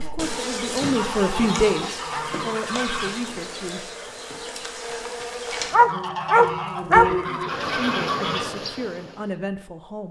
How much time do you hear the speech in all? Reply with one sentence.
The speech can be heard for 7 seconds in total.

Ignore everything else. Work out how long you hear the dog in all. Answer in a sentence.
The dog can be heard for 3 seconds in total.